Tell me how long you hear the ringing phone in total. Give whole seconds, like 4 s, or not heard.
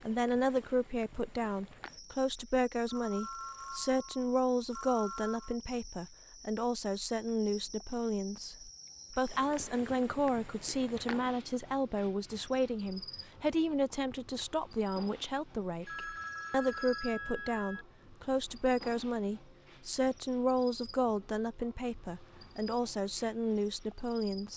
5 s.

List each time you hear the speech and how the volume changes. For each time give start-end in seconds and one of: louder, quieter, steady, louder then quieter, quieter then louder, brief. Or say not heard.
0.0-24.5 steady.